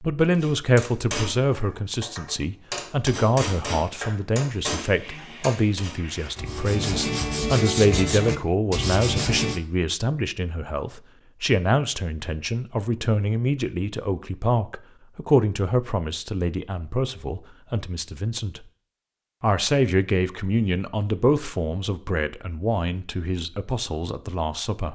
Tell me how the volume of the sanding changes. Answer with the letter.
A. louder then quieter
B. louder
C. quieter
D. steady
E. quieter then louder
B.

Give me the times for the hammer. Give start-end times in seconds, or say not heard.
0.3-6.0.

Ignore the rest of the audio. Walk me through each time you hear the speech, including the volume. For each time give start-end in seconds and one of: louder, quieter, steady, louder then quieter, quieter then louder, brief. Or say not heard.
0.0-18.6 steady
19.4-24.9 quieter.